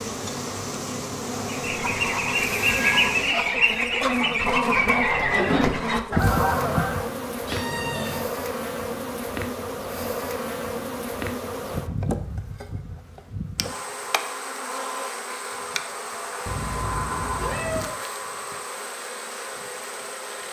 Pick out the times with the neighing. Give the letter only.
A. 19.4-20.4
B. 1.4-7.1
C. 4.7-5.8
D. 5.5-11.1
C.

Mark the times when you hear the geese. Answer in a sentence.
You can hear the geese from 1.4 to 7.1 s.